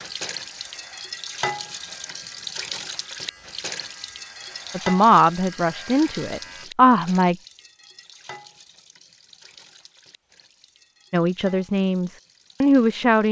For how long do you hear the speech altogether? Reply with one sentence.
You can hear the speech for 5 seconds altogether.